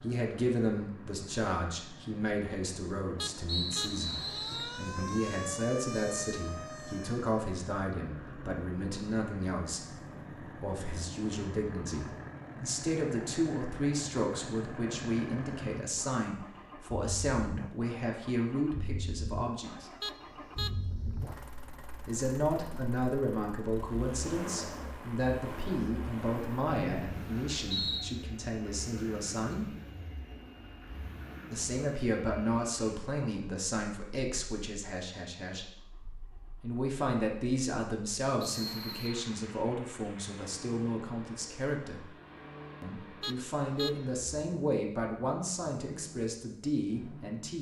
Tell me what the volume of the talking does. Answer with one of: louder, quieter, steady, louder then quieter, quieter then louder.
steady.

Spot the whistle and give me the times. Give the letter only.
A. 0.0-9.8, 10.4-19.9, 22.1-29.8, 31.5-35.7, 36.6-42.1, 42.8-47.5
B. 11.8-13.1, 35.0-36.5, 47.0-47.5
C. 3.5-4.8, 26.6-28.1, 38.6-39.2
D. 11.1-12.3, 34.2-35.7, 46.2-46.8
C.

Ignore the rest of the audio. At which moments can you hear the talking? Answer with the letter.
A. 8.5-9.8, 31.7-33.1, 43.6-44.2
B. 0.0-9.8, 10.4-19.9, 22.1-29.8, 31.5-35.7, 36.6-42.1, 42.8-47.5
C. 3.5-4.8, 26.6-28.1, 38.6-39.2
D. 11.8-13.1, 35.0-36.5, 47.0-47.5
B.